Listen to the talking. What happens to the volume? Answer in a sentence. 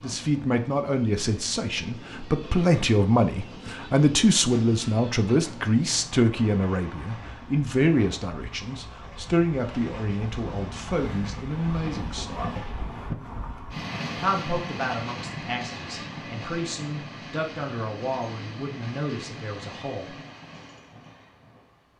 The volume of the talking goes down.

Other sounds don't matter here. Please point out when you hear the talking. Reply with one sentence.
The talking can be heard from 0.0 to 12.7 s and from 14.2 to 20.1 s.